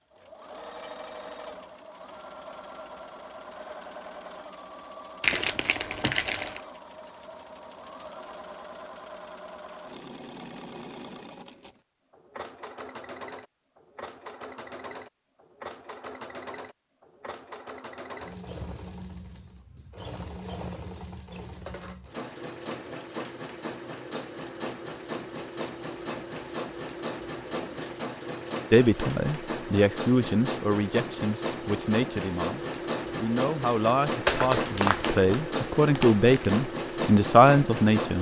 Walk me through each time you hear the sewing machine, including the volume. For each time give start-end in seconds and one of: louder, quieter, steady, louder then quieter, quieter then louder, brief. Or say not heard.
0.1-38.1 louder.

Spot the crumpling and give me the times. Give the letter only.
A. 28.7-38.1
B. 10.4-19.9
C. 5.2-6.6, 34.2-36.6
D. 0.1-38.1
C.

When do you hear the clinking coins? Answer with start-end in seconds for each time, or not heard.
not heard.